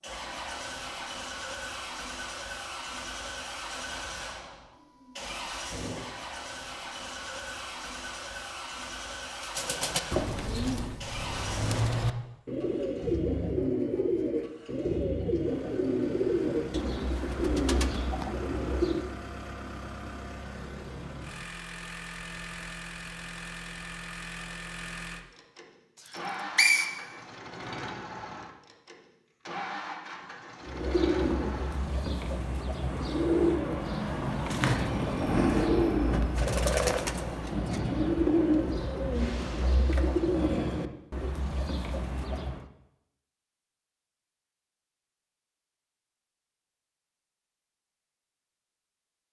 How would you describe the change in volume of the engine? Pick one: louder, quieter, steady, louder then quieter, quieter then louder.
steady.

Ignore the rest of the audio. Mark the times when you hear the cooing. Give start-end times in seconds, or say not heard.
9.4-19.1, 30.6-42.6.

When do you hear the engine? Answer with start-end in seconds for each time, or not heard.
0.0-33.6.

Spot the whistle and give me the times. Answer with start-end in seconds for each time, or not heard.
26.1-26.9.